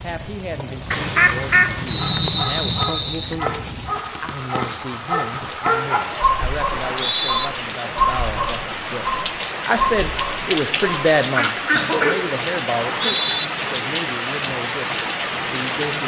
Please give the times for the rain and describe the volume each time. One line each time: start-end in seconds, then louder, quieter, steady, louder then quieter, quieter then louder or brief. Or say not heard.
0.0-16.0 louder.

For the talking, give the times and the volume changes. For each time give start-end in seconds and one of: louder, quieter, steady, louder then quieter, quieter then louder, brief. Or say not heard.
0.0-14.8 louder then quieter
15.4-16.0 brief.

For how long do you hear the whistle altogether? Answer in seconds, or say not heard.
3 s.